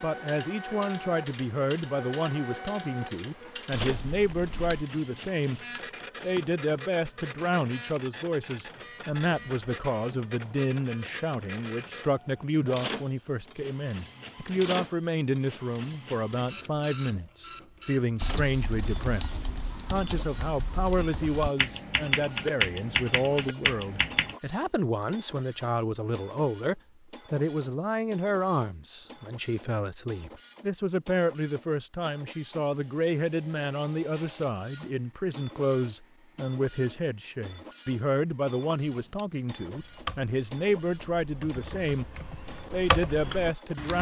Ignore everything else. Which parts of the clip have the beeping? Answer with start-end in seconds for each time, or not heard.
not heard.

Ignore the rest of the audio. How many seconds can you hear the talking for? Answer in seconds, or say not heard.
43 s.